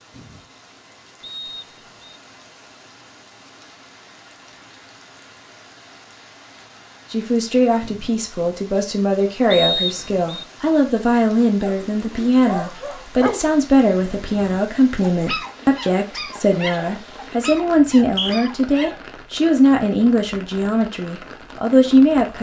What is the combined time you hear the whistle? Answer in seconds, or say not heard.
3 s.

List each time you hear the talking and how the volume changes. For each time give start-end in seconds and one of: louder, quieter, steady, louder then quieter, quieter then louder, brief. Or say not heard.
7.1-22.3 steady.